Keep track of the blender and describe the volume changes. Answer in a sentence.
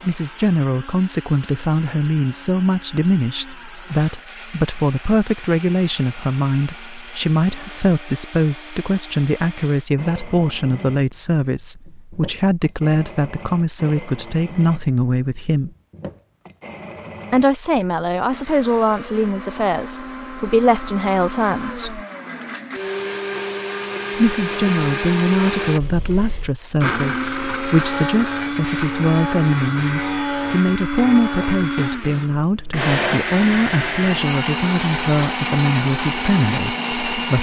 The loudness of the blender goes up.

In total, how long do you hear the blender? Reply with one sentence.
The blender can be heard for 37 seconds in total.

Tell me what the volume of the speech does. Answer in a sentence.
The volume of the speech stays about the same.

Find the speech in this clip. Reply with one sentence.
You can hear the speech from 0.0 to 15.7 s, from 17.3 to 22.0 s and from 24.1 to 37.3 s.